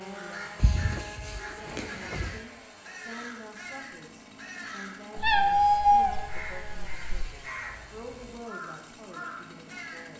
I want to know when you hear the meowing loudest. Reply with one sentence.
The volume of the meowing peaks at 6 seconds.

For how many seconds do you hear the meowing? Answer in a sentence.
You can hear the meowing for 4 seconds altogether.